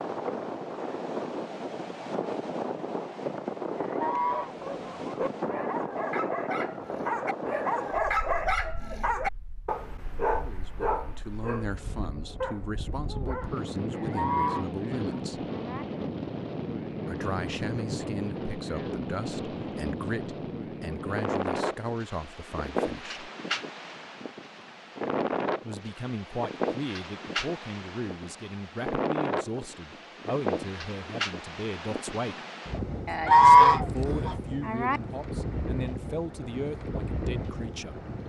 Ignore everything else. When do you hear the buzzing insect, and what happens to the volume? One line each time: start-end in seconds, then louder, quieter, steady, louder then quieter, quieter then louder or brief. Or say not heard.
not heard.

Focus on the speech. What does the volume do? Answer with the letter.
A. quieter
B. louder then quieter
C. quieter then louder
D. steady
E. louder
D.